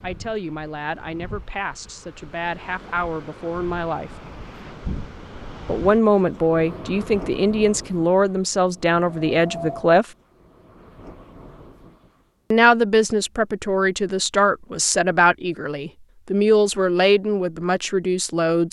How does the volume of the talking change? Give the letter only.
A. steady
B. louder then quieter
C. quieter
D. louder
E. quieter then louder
D.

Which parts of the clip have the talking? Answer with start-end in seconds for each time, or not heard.
0.0-4.1, 5.7-10.1, 12.5-18.6.